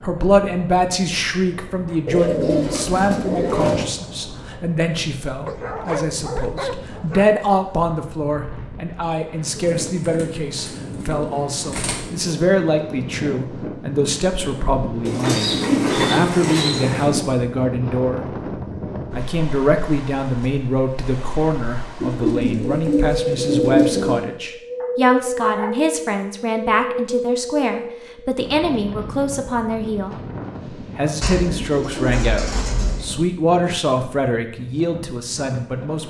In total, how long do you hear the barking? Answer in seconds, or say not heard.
3 s.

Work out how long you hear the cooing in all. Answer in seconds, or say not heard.
10 s.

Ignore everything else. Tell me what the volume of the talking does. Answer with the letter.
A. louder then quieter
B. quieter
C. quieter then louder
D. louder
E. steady
E.